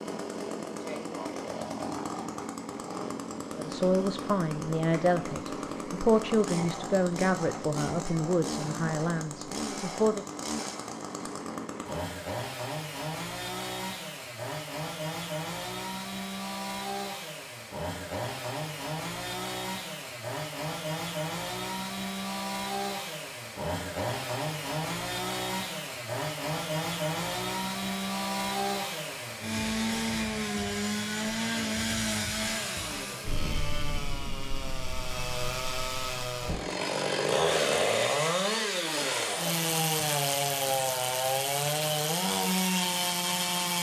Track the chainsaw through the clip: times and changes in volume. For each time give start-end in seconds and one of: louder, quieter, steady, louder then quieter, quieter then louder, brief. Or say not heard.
0.0-43.7 louder.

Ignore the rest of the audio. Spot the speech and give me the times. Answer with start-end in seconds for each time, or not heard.
3.5-10.2.